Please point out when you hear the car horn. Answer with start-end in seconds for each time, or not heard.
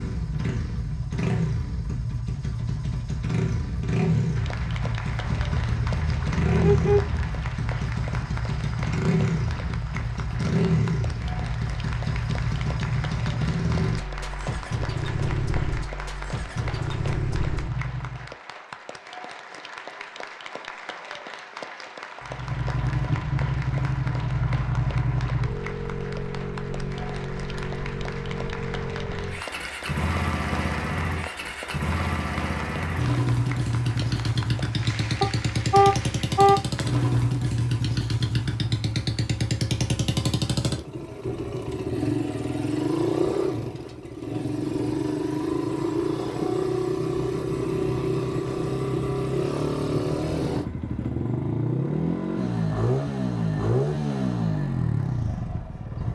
5.2-7.2, 35.2-36.6.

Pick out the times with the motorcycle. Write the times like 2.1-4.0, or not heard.
0.0-18.3, 22.2-56.0.